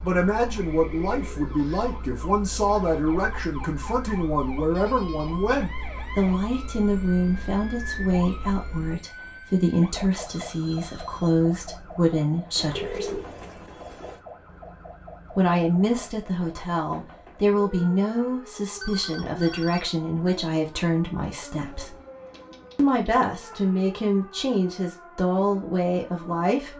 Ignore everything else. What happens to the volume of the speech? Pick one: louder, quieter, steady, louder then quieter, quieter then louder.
steady.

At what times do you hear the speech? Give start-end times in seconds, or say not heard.
0.0-13.2, 15.3-21.9, 22.8-26.7.